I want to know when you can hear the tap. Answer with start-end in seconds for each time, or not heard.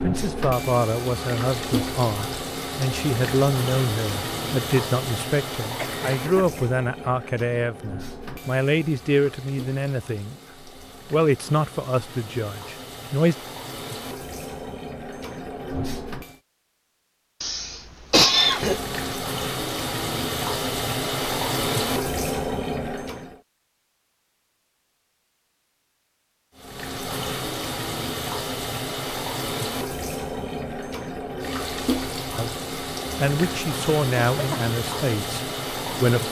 0.0-16.4, 18.2-23.4, 26.6-36.2.